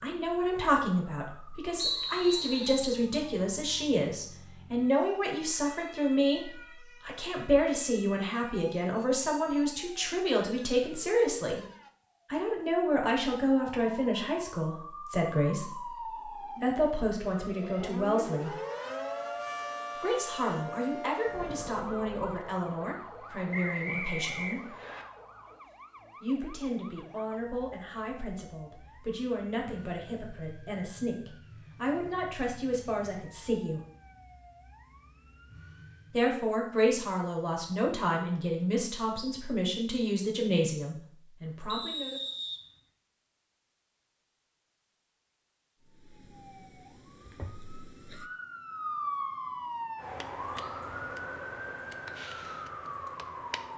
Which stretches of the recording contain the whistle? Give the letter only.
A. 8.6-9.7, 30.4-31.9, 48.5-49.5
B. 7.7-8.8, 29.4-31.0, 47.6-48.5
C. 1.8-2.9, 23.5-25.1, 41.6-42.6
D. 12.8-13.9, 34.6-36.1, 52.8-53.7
C.